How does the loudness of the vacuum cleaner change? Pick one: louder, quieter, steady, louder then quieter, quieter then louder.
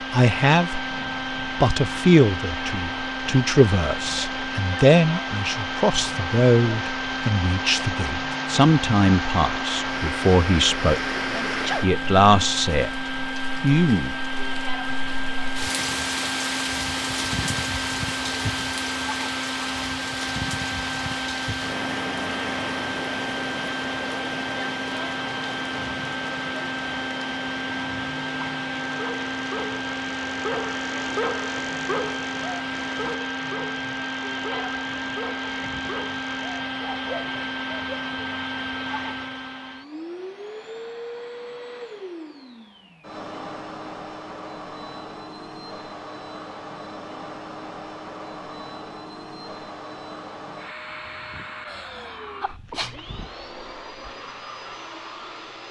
quieter.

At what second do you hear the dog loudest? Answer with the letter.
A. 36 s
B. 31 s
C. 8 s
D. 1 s
B.